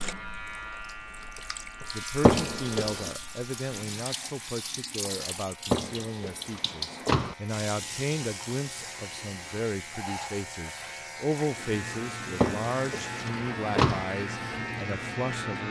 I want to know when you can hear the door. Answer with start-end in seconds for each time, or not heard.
2.2-3.1, 5.7-7.3, 12.4-14.1.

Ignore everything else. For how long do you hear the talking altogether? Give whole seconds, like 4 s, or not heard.
14 s.